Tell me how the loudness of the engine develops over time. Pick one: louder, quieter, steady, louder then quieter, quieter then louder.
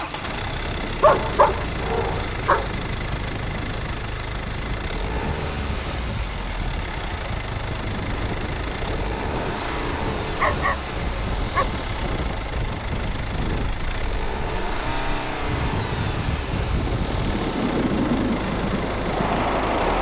steady.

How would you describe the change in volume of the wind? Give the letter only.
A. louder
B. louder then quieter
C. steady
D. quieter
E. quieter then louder
A.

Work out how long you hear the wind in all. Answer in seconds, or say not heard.
20 s.